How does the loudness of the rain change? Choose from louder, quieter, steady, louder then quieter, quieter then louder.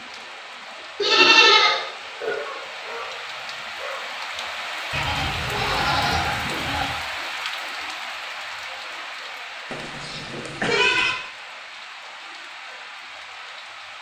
louder then quieter.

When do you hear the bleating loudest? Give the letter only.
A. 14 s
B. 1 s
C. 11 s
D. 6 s
B.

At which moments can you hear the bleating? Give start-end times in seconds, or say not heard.
1.0-2.4, 4.9-7.0, 9.7-11.2.